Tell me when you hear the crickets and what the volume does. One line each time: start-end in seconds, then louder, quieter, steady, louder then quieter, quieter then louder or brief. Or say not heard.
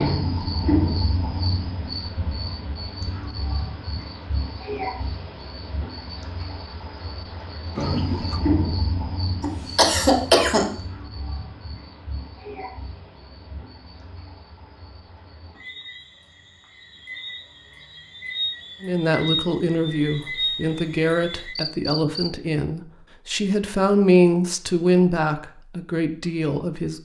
0.0-22.3 quieter then louder.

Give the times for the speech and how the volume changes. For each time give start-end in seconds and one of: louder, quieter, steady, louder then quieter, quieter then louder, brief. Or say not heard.
18.8-27.0 louder then quieter.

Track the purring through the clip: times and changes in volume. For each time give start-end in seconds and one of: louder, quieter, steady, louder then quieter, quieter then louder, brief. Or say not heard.
not heard.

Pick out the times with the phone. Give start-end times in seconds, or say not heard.
7.8-8.5.